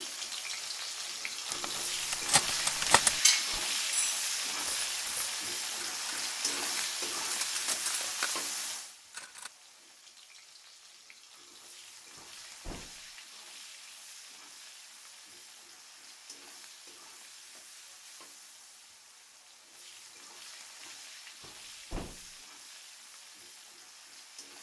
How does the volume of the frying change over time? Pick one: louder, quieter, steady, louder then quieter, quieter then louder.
quieter.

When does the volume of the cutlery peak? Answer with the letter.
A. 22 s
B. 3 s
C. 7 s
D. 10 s
B.